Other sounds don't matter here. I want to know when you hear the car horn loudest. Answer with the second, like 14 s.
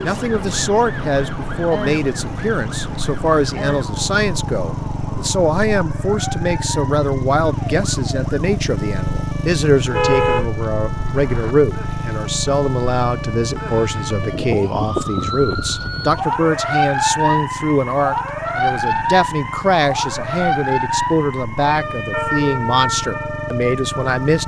10 s.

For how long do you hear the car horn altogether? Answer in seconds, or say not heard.
2 s.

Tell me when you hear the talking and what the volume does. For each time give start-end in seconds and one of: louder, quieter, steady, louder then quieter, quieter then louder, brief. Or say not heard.
0.0-24.4 steady.